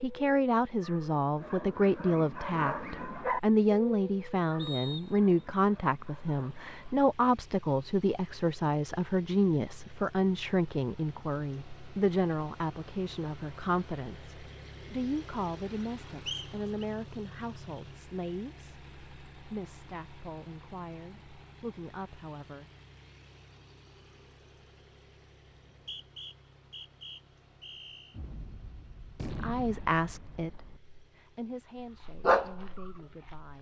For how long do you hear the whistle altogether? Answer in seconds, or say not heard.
4 s.